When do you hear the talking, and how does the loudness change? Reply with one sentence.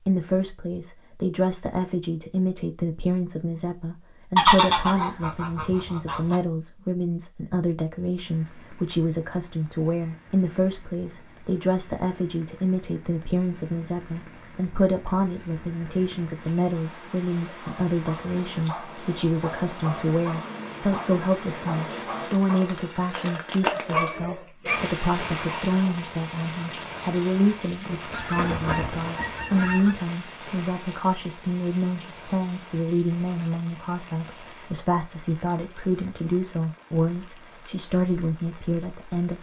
You can hear the talking from 0.1 to 39.3 s, at a steady volume.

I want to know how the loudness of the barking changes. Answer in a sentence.
The loudness of the barking goes up.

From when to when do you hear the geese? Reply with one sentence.
You can hear the geese from 4.3 to 6.3 s and from 28.1 to 29.9 s.